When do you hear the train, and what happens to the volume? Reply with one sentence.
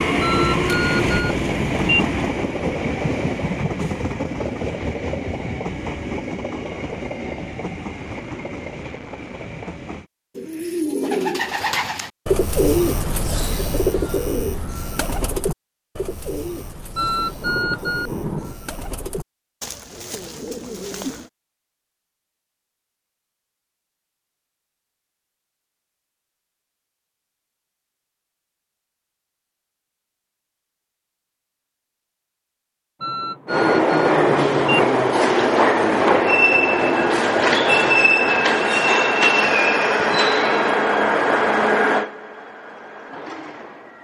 The train can be heard from 0.0 to 10.1 s, getting quieter; and from 33.5 to 43.9 s, getting quieter.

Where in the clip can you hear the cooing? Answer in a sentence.
The cooing can be heard from 10.3 to 21.3 s.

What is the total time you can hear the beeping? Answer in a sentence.
You can hear the beeping for 5 seconds altogether.